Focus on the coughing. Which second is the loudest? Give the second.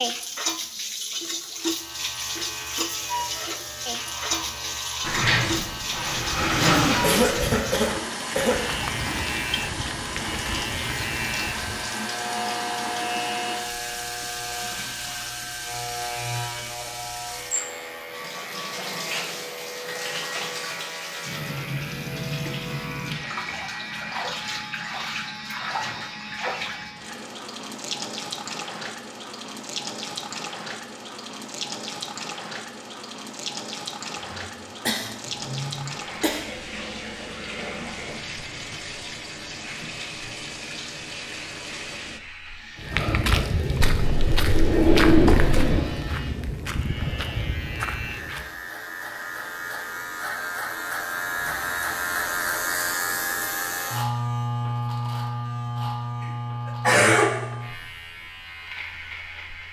57 s.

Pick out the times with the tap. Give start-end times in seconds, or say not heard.
0.0-42.2.